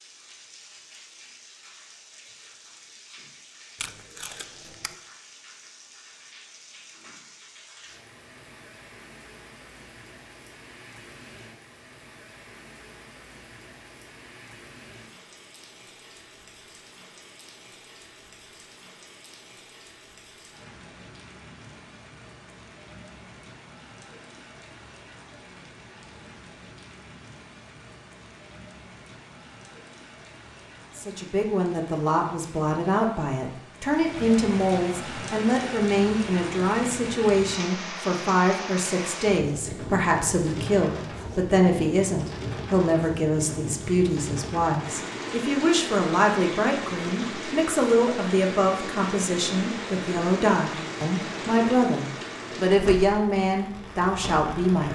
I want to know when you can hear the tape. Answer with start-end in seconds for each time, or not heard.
3.8-5.0.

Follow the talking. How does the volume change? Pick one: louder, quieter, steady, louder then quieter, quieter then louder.
steady.